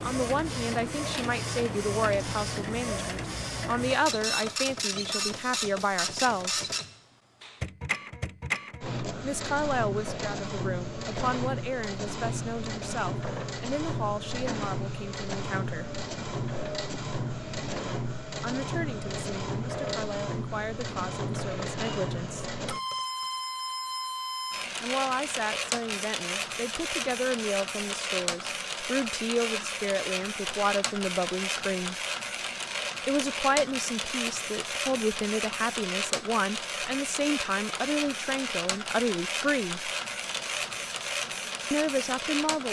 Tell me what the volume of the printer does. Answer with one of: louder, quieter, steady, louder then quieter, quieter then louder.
steady.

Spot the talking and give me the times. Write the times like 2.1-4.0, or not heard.
0.0-6.7, 9.2-15.9, 18.4-22.6, 24.8-31.9, 33.0-39.9, 41.7-42.6.